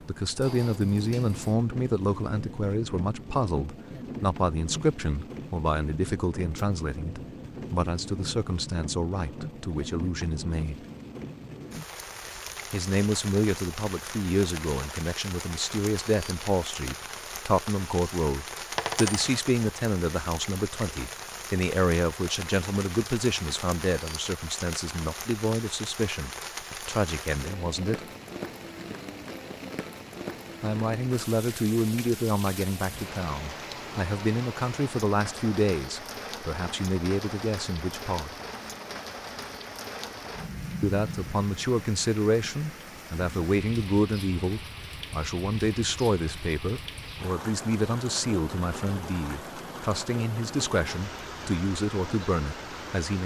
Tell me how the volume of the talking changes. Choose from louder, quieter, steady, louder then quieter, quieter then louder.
steady.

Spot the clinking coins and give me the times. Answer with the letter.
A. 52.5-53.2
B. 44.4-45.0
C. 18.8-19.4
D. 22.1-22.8
C.